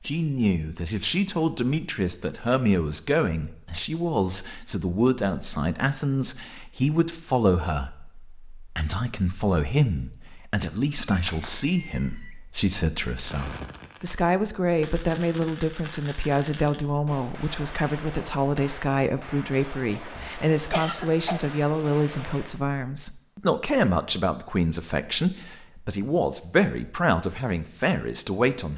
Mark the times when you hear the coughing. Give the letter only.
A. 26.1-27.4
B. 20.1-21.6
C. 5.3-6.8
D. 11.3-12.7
B.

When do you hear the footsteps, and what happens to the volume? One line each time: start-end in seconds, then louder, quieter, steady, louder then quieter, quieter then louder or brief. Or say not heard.
not heard.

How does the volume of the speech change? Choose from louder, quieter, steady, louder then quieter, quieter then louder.
steady.